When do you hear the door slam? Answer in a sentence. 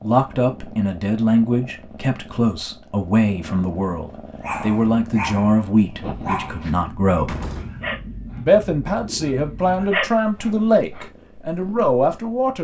You can hear the door slam from 7.2 to 7.8 s.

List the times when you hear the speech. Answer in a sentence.
You can hear the speech from 0.0 to 7.3 s and from 8.3 to 12.6 s.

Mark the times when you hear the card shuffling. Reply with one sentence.
You can't hear the card shuffling here.